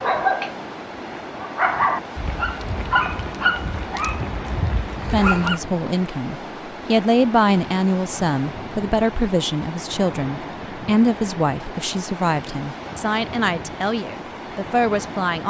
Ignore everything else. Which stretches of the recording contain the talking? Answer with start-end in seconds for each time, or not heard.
5.1-15.4.